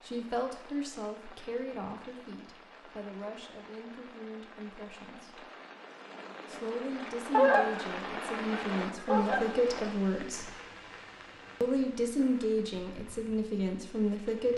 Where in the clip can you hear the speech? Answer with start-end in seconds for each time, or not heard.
0.0-5.5, 6.5-10.6, 11.6-14.5.